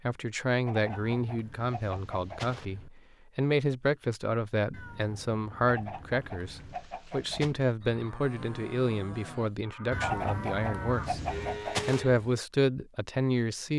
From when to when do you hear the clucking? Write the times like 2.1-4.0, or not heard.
0.7-2.6, 5.7-7.5, 10.0-12.1.